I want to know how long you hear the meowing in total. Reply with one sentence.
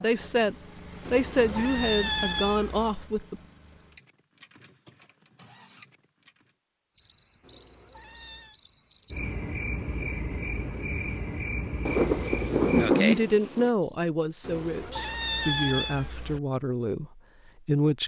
You can hear the meowing for 5 seconds altogether.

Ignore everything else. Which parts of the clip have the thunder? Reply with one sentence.
The thunder can be heard from 11.8 to 13.7 s.